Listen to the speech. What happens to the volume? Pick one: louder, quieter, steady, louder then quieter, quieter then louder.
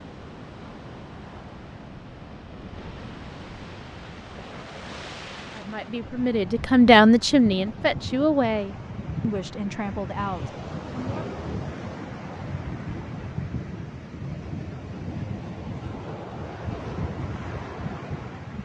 quieter.